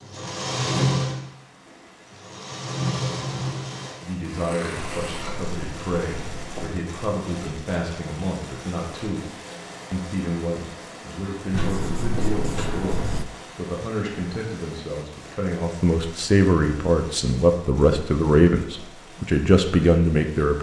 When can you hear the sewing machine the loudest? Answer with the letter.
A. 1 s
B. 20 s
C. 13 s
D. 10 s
A.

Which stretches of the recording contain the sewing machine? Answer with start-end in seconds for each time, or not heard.
0.0-5.5.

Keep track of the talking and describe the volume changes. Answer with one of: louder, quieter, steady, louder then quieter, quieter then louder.
louder.